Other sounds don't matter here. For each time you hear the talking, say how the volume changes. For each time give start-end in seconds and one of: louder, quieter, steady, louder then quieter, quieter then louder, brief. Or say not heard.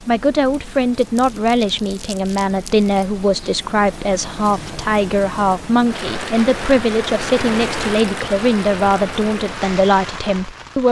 0.1-10.8 steady.